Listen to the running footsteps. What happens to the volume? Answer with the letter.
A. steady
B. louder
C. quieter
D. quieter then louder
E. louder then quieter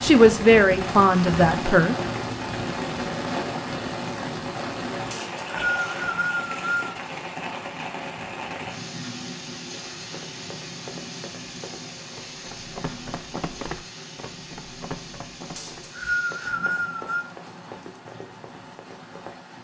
E.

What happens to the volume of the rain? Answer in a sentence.
The loudness of the rain goes down.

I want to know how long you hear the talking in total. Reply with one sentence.
The talking can be heard for 2 seconds in total.